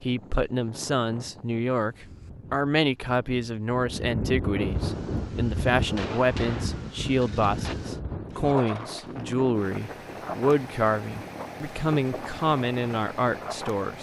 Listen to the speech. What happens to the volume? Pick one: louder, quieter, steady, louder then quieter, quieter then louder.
steady.